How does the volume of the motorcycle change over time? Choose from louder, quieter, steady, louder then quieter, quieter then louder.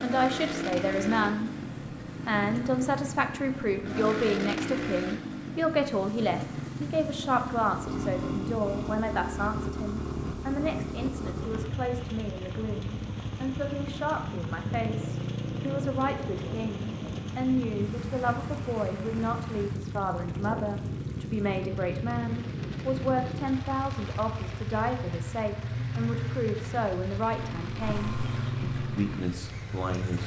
steady.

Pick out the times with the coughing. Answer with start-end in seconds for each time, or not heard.
27.8-28.6.